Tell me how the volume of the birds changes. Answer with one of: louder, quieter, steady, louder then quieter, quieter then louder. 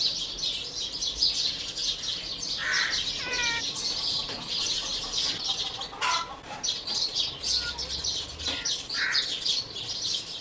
steady.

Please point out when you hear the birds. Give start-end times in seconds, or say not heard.
0.0-10.3.